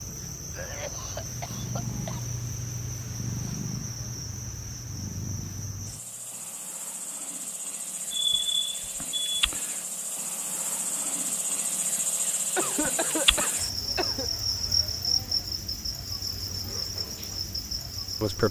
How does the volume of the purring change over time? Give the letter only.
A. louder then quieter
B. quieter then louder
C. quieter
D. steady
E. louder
C.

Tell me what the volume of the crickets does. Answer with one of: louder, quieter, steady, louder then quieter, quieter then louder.
louder.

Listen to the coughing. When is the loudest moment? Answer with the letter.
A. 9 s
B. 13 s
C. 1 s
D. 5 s
B.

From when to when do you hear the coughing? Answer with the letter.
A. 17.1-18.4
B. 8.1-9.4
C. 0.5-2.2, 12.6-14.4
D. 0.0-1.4
C.